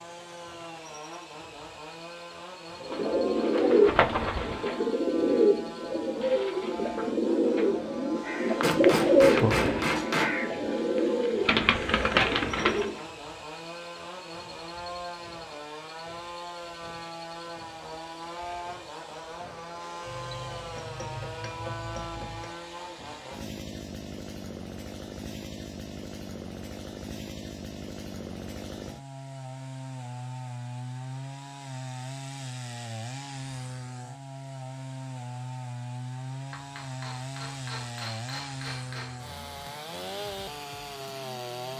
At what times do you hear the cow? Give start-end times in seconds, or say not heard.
not heard.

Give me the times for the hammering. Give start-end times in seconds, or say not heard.
8.6-10.3, 20.1-22.6, 36.5-39.2.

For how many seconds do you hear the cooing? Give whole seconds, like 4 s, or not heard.
10 s.